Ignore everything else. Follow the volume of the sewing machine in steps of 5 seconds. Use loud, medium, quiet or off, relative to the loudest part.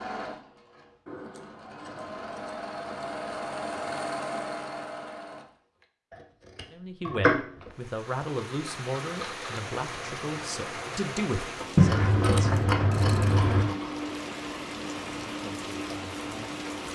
loud, medium, loud, loud.